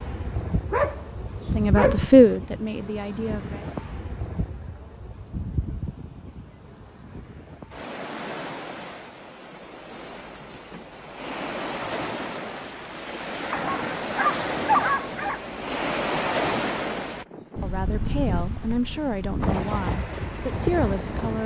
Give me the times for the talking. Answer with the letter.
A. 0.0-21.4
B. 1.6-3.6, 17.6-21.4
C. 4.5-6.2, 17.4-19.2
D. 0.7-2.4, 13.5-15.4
B.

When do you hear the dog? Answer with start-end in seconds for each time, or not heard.
0.7-2.4, 13.5-15.4.